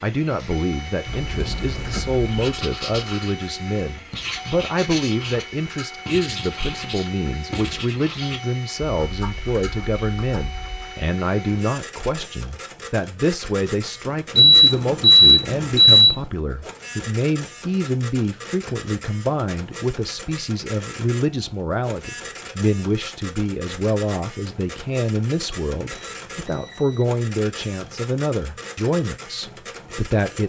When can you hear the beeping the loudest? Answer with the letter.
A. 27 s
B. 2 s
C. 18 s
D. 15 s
D.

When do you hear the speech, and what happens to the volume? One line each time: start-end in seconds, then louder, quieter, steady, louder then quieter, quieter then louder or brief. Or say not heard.
0.0-30.4 steady.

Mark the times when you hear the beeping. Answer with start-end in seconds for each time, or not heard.
1.1-2.6, 14.3-16.2, 25.9-27.1.